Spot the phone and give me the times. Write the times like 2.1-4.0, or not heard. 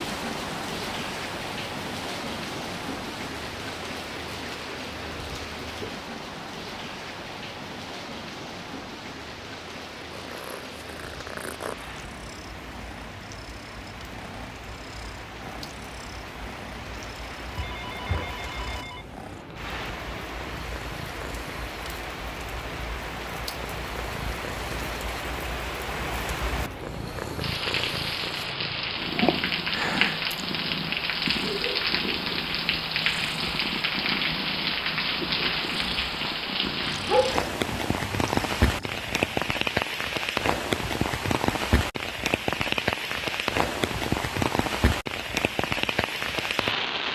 17.4-19.1.